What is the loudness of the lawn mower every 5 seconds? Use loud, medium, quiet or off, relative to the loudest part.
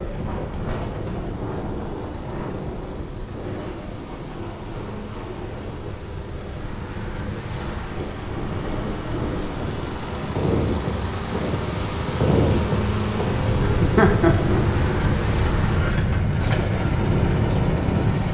quiet, medium, loud, loud.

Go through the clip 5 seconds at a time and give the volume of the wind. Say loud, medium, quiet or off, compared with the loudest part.
medium, medium, loud, loud.